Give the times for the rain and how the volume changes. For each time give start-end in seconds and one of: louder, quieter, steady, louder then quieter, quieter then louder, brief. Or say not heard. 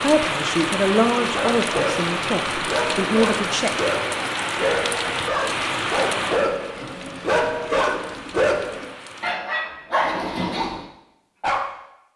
0.0-9.3 quieter.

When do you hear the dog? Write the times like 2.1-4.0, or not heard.
1.3-11.8.